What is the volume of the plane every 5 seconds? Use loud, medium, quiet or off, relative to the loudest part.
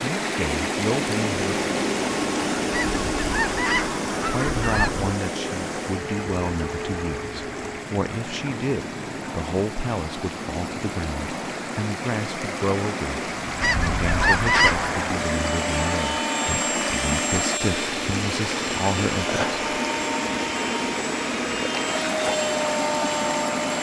loud, medium, medium, loud, loud.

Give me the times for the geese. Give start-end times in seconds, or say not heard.
2.7-5.1, 13.6-14.9.